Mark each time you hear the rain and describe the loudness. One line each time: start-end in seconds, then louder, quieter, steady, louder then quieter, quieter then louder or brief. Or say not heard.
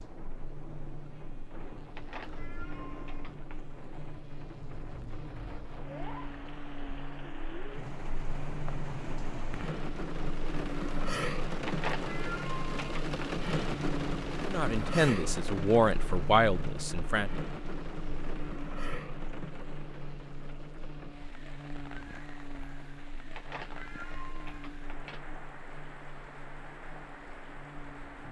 0.0-28.2 louder then quieter.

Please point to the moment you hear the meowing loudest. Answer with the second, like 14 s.
12 s.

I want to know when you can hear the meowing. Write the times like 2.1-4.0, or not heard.
1.9-3.6, 11.7-13.3, 23.4-25.2.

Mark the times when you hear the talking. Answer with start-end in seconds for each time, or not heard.
14.4-17.3.